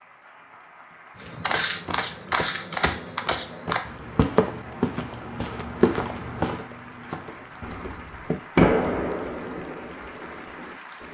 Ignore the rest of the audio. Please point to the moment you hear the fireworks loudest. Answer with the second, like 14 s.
9 s.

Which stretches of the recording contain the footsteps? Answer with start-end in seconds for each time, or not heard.
1.2-8.4.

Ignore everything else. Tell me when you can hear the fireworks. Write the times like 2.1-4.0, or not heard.
7.6-11.0.